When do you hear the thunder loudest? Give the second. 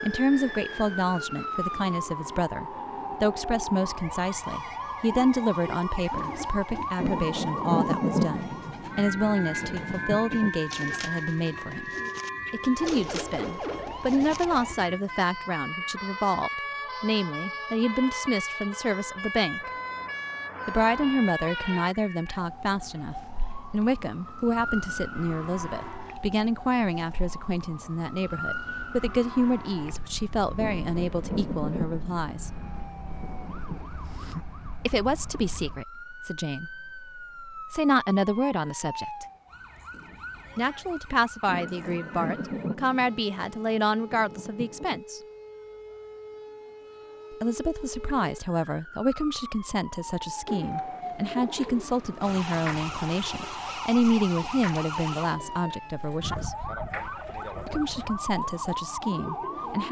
8 s.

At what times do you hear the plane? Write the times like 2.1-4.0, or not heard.
not heard.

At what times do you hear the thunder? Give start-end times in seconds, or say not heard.
7.0-10.5, 30.6-33.9, 41.5-45.0.